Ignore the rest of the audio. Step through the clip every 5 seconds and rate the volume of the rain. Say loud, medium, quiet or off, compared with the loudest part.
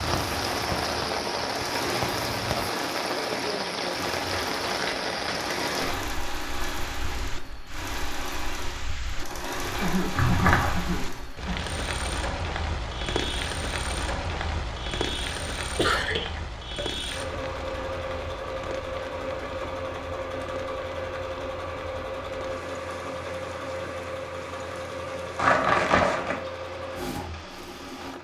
loud, medium, medium, medium, quiet, quiet.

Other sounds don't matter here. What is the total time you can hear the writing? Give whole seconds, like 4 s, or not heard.
3 s.